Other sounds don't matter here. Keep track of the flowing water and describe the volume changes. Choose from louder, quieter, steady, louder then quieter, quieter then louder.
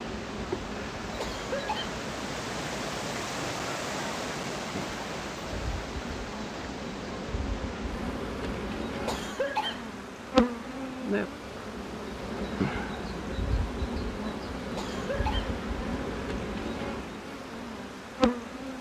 quieter.